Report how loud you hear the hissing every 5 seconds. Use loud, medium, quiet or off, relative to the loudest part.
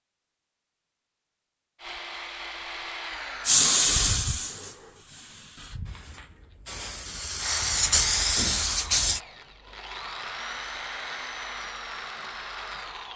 loud, medium, off.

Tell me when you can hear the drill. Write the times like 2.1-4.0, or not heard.
1.8-3.7, 7.3-13.1.